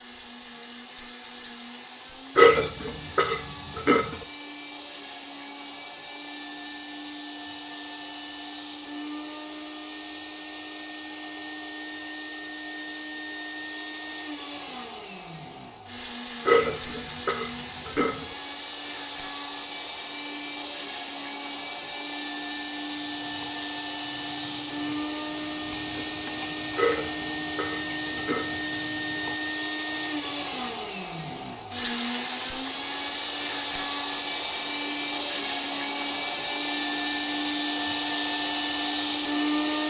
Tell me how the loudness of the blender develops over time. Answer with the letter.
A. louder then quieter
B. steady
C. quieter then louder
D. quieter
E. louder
E.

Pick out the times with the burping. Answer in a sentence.
The burping can be heard from 2.4 to 4.2 s, from 16.4 to 18.2 s and from 26.8 to 28.6 s.